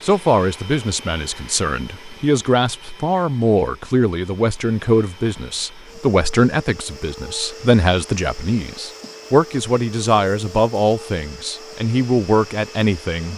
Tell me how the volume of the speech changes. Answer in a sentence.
The loudness of the speech stays about the same.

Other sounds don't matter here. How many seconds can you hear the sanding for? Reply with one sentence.
The sanding can't be heard in this clip.